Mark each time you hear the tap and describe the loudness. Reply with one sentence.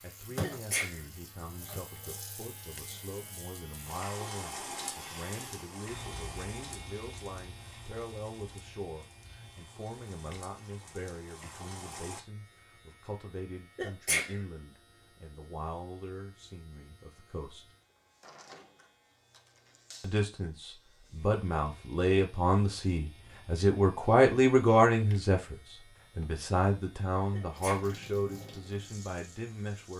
The tap can be heard from 0.0 to 12.2 s, getting quieter then louder; and briefly from 27.5 to 29.9 s.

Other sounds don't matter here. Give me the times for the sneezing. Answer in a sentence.
You can hear the sneezing from 0.4 to 1.0 s, from 13.8 to 14.3 s and from 27.3 to 27.9 s.